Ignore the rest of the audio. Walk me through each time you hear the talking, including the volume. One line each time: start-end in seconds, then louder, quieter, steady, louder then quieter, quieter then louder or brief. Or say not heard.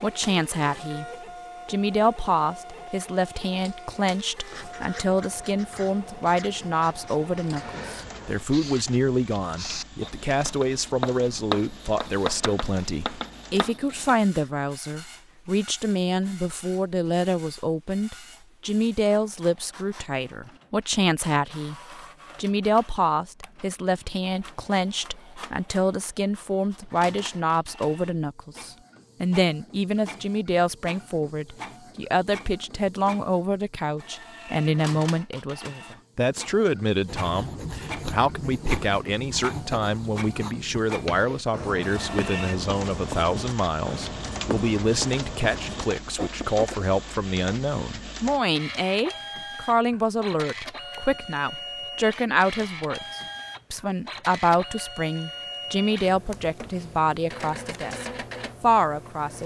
0.0-1.1 brief
1.6-21.8 steady
22.4-59.4 steady.